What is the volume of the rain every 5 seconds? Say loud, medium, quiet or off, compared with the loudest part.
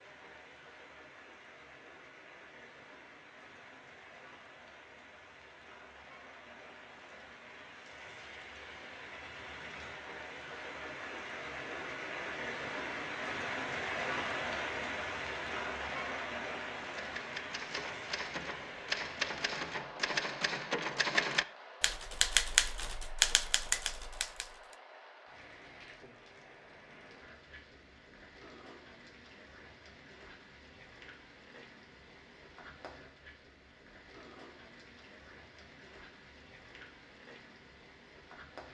quiet, medium, loud, loud, quiet, quiet, quiet, quiet.